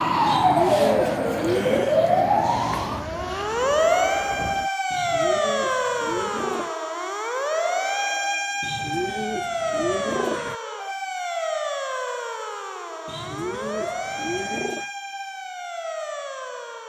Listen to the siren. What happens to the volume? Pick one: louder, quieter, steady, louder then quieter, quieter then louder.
quieter.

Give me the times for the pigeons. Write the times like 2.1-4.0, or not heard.
0.2-1.9, 4.9-6.7, 8.6-10.6, 13.1-14.9.